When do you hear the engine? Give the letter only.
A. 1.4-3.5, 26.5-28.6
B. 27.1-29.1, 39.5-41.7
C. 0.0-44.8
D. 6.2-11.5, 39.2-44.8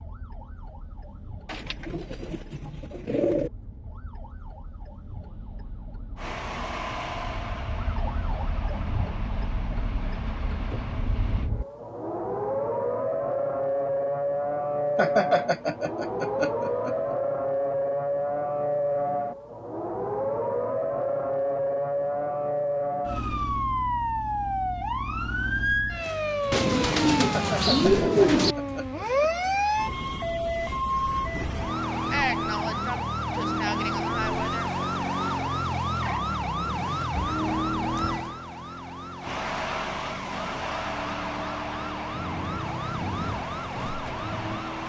D.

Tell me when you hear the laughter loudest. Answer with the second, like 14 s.
15 s.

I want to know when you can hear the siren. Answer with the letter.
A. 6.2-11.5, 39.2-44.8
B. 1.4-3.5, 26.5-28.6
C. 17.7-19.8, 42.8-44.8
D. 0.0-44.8
D.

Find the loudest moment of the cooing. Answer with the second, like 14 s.
28 s.